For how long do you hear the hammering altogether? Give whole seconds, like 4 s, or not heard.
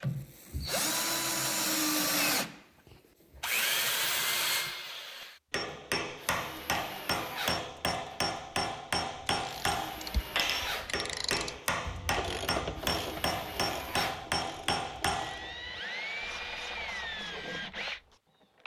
10 s.